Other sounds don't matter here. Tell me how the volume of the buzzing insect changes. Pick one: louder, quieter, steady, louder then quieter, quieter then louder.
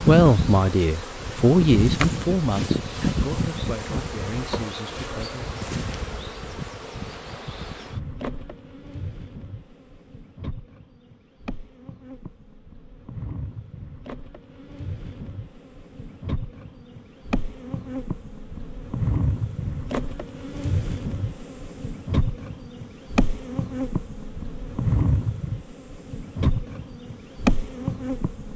quieter then louder.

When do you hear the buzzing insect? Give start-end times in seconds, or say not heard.
0.0-28.5.